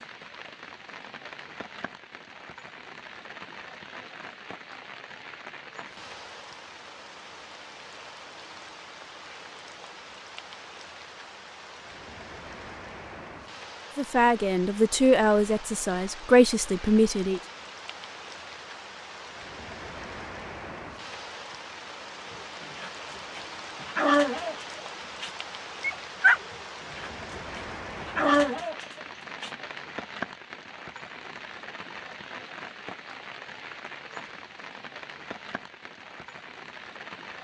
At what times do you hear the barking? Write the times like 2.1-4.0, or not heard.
22.3-29.5.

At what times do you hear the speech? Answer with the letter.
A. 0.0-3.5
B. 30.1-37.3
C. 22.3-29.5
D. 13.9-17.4
D.